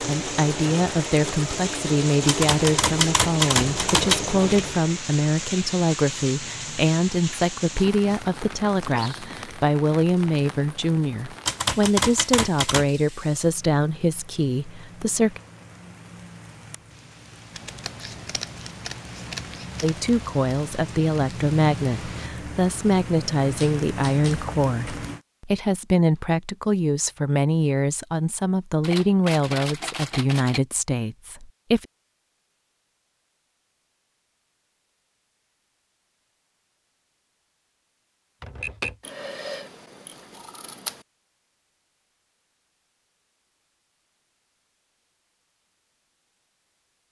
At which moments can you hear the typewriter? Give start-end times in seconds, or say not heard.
2.2-4.2, 11.4-12.8, 23.6-25.0, 28.8-30.6, 38.4-39.0.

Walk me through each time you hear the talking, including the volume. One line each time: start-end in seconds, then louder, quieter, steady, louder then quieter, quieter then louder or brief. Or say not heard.
0.0-15.4 steady
19.8-31.9 steady.